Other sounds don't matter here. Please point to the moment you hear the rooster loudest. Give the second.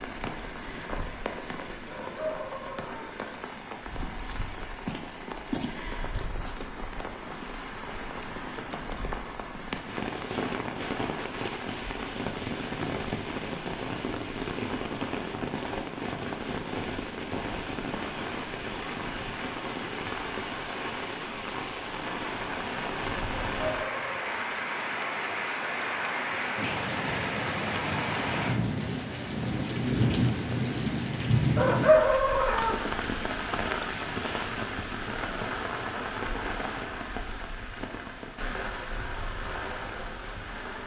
32 s.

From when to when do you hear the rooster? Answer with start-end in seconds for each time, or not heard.
1.9-3.1, 23.2-24.4, 31.6-32.8.